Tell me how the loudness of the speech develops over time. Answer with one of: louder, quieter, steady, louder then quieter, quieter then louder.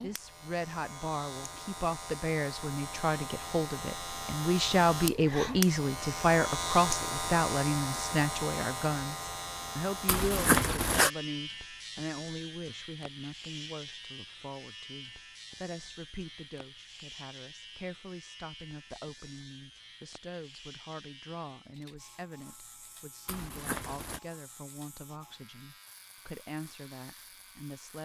quieter.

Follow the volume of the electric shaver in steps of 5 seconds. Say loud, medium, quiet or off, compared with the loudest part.
medium, loud, medium, quiet, quiet, quiet.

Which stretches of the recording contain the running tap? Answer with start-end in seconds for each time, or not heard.
not heard.